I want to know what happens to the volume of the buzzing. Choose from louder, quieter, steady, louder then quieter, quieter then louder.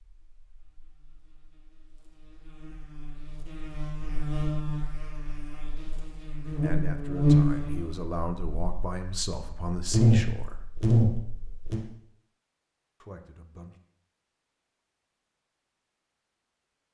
louder.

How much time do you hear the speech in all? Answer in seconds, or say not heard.
5 s.